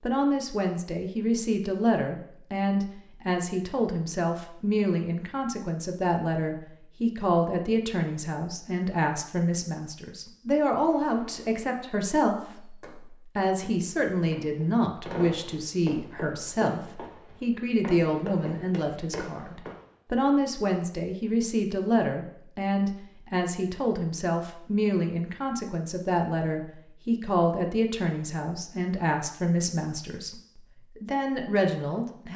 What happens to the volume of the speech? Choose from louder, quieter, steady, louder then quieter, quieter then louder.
steady.